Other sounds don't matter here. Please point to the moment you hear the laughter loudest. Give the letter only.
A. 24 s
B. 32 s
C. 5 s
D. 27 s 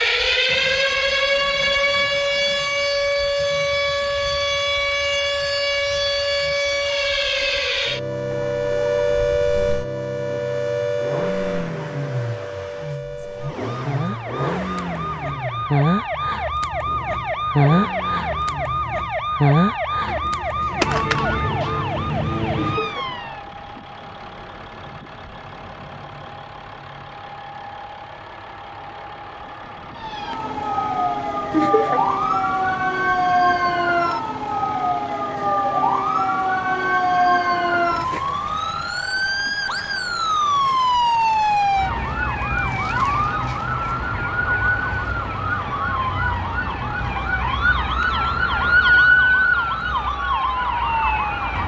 B.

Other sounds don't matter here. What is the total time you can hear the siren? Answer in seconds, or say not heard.
45 s.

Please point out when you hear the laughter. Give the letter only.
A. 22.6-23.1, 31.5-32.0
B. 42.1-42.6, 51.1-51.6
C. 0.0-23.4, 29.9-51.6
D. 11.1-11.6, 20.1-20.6
A.